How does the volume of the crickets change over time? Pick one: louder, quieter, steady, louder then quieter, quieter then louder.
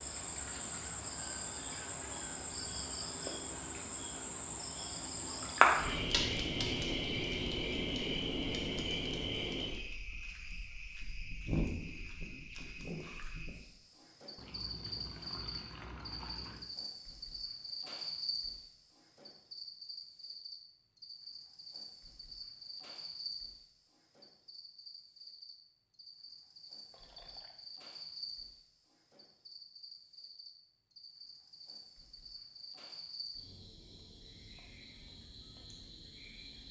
quieter.